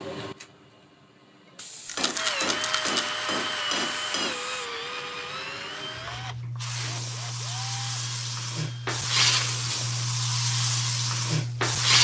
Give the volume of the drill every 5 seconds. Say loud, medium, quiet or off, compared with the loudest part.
loud, medium, off.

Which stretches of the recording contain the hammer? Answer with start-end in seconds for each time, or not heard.
1.9-4.5.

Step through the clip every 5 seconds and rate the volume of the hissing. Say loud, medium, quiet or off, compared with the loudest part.
quiet, medium, loud.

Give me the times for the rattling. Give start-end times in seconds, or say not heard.
1.9-3.1.